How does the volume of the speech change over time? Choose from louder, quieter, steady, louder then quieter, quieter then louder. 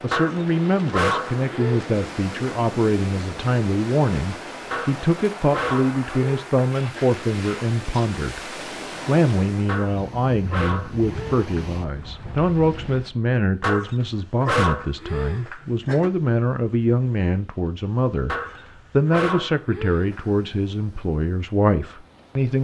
steady.